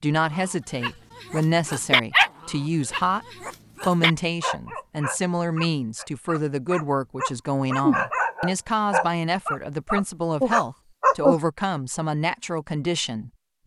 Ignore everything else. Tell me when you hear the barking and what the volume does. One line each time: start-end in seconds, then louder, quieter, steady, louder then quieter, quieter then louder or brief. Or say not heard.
0.3-11.3 quieter then louder.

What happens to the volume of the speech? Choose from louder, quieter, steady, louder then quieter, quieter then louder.
steady.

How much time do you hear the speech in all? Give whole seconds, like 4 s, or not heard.
13 s.